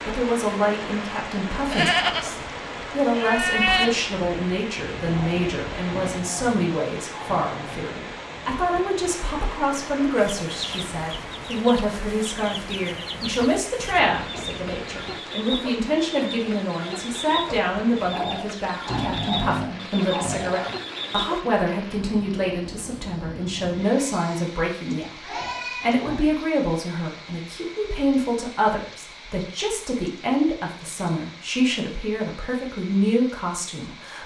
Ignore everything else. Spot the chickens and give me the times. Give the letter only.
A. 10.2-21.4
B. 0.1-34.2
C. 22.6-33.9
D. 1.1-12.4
A.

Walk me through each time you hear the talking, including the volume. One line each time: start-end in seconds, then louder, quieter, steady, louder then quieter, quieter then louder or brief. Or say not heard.
0.1-34.2 steady.